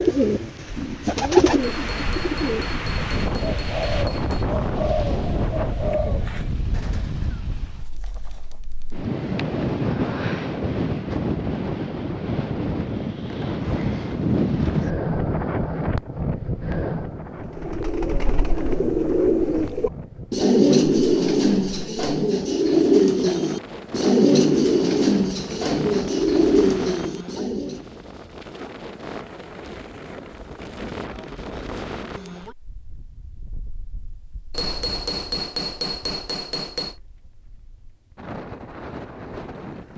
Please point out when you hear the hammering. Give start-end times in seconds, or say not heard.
1.6-4.5, 34.5-37.0.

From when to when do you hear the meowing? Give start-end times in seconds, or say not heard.
not heard.